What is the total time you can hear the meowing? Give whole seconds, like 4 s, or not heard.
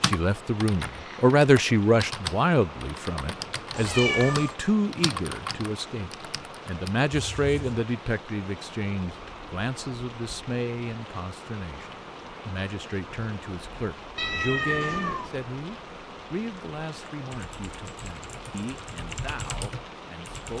2 s.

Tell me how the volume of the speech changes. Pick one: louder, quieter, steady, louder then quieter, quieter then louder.
quieter.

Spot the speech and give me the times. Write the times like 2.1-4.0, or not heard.
0.0-20.5.